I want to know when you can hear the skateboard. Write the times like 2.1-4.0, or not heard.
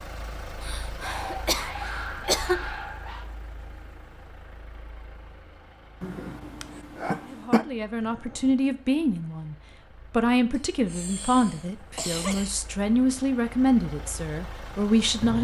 not heard.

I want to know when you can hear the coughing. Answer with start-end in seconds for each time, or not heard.
0.6-2.6, 6.0-7.7, 10.5-12.6.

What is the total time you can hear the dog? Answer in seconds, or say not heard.
3 s.